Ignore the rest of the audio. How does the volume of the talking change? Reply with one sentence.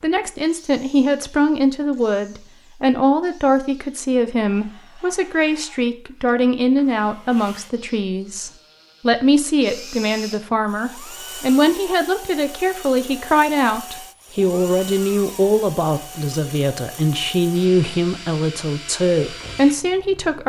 The volume of the talking stays about the same.